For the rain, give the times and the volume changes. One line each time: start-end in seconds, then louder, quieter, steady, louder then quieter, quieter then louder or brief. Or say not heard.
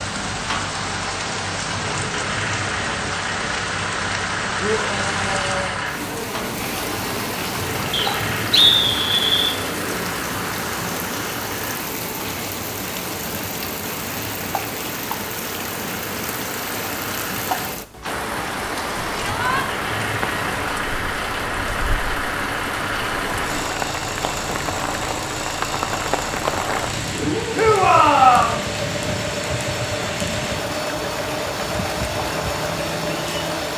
0.0-33.7 steady.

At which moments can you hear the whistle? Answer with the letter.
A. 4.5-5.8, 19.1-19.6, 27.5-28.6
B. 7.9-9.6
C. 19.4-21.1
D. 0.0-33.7
B.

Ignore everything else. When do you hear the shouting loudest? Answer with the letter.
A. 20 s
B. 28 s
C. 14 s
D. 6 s
B.